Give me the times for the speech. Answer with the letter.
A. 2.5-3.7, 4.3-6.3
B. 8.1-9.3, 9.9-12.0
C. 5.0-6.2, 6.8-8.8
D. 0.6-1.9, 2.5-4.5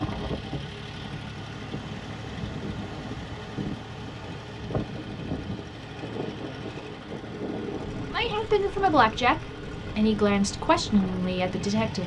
B.